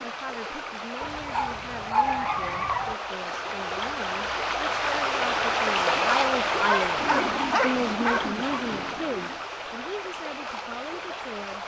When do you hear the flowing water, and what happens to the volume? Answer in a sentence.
The flowing water can be heard from 0.0 to 11.6 s, getting louder then quieter.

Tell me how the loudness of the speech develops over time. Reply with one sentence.
The loudness of the speech goes up, then down.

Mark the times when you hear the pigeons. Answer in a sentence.
The pigeons can be heard from 7.0 to 9.4 s.